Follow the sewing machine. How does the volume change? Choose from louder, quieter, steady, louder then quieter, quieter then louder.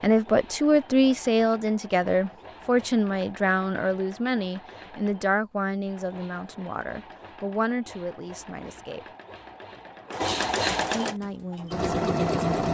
louder.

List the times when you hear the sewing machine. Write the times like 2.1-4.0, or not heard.
0.0-12.7.